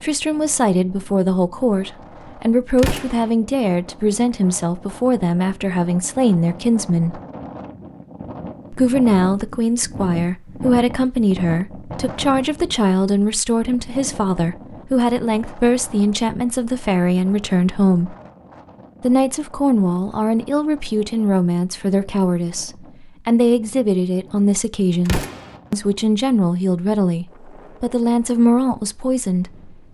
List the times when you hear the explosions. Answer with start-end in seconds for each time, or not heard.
2.8-3.3, 25.1-25.6.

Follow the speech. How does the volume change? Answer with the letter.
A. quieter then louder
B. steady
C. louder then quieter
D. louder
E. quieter
B.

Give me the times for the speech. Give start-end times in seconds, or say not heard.
0.0-7.2, 8.7-18.1, 19.0-29.7.